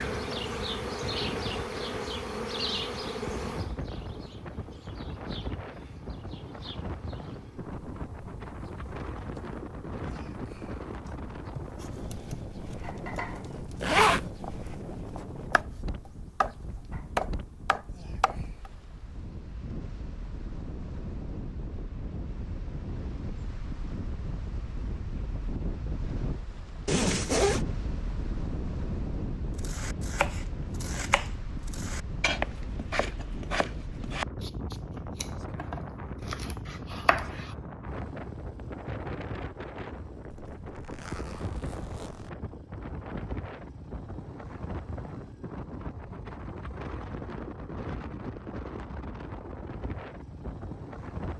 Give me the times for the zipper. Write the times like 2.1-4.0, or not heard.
13.8-14.3, 26.9-27.6, 40.3-42.3.